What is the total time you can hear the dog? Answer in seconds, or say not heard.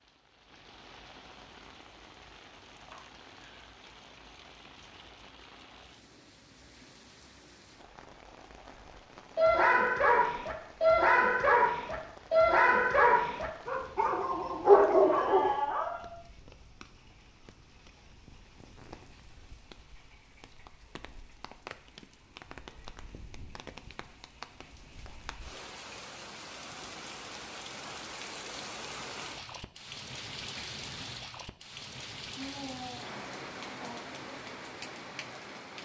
6 s.